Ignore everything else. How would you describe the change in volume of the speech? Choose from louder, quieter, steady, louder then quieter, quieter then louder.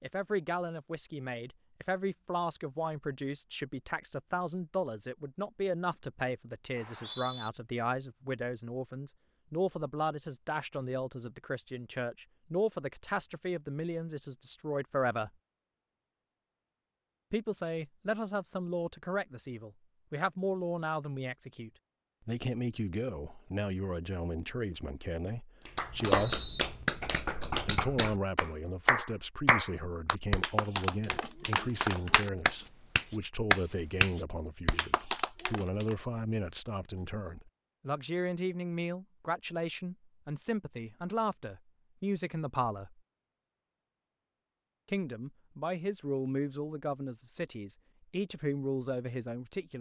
steady.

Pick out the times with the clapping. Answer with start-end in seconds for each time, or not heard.
25.6-36.0.